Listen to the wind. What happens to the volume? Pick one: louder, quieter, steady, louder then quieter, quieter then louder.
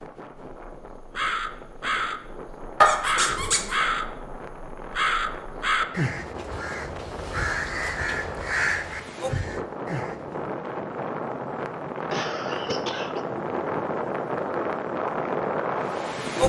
louder.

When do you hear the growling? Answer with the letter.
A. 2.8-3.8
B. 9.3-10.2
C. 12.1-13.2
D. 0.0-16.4
A.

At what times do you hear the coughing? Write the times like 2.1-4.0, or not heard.
12.1-13.2.